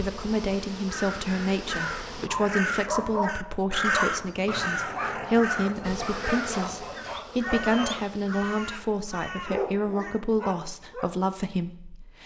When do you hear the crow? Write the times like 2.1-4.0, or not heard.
0.8-10.2.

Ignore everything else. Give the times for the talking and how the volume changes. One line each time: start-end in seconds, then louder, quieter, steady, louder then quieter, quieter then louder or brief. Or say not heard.
0.0-12.2 steady.